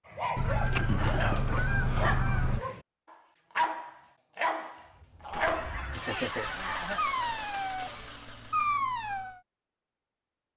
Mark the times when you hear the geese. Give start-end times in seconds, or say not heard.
0.3-2.6, 5.3-7.0.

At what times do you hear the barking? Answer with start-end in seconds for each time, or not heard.
0.1-9.4.